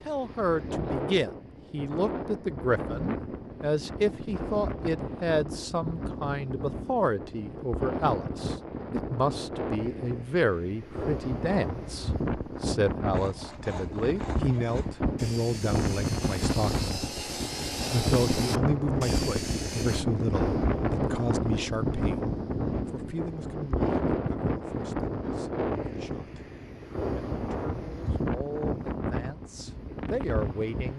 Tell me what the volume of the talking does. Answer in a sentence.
The loudness of the talking goes down.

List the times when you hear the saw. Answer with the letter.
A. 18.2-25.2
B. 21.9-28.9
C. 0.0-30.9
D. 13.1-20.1
D.